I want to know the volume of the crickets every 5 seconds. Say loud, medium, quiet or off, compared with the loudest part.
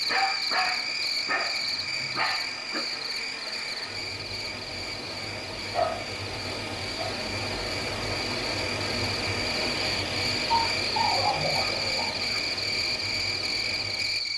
loud, medium, loud.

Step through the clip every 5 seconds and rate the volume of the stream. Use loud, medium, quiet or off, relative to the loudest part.
medium, loud, loud.